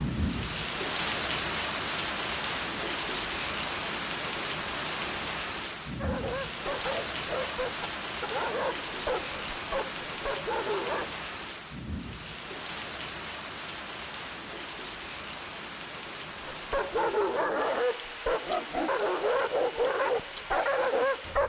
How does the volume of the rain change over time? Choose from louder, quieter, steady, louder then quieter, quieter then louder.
quieter.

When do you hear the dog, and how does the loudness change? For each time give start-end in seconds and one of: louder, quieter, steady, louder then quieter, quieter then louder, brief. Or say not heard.
6.0-11.1 steady
16.5-21.4 steady.